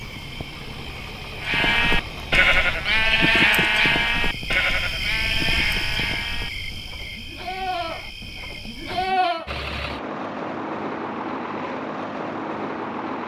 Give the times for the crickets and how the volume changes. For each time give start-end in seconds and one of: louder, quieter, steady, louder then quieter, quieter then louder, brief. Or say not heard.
0.0-9.2 louder then quieter.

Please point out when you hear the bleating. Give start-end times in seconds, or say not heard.
1.4-9.5.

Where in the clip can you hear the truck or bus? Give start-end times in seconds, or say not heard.
0.0-3.5, 9.4-13.2.